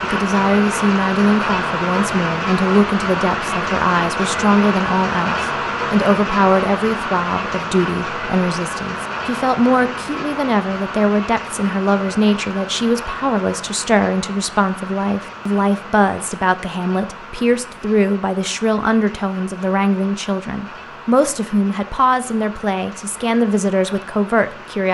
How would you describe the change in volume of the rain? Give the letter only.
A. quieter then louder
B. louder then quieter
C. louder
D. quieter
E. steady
D.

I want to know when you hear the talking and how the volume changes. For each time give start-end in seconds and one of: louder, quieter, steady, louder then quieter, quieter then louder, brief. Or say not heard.
0.0-24.8 steady.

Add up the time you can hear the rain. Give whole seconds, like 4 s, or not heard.
25 s.